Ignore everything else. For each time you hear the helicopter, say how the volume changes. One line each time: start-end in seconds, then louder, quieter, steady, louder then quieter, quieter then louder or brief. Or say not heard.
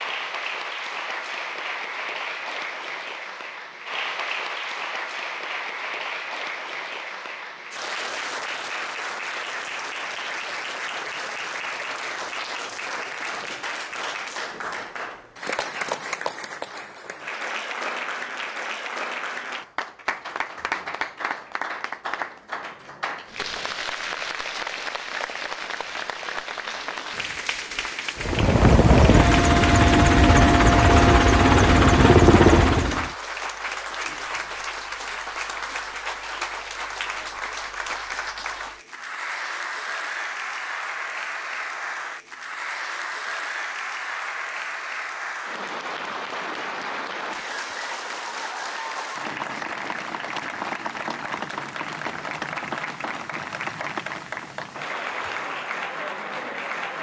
28.1-33.1 steady.